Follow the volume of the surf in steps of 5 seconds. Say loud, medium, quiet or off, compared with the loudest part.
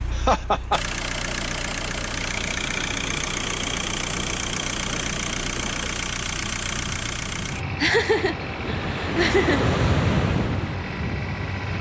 medium, loud, loud.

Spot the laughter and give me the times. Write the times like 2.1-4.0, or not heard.
0.1-0.8, 7.8-9.8.